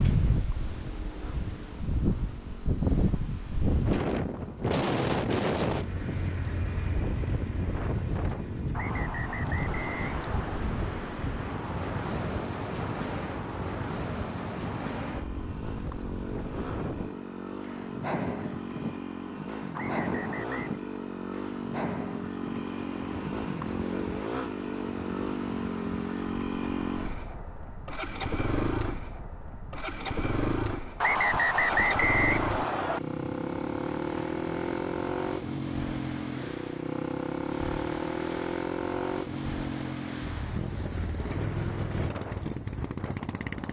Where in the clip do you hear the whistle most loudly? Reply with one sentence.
The volume of the whistle peaks at 32 seconds.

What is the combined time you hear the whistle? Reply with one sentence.
You can hear the whistle for 5 seconds altogether.